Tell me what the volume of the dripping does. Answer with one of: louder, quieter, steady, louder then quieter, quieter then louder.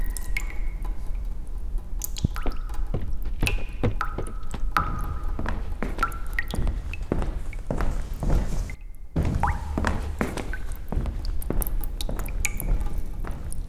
louder then quieter.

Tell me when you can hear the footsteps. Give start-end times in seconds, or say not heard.
2.5-13.6.